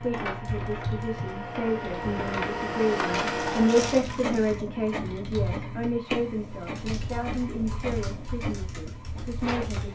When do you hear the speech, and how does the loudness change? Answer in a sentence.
The speech can be heard from 0.0 to 9.9 s, getting louder then quieter.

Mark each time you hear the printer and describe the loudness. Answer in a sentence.
The printer can be heard from 0.0 to 9.9 s, getting louder then quieter.